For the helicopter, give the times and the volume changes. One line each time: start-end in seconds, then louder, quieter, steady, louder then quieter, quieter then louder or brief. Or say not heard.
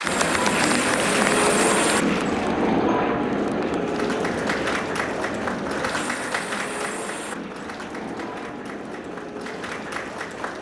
0.0-10.5 quieter.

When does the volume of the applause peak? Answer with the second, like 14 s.
1 s.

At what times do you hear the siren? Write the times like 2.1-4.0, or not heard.
not heard.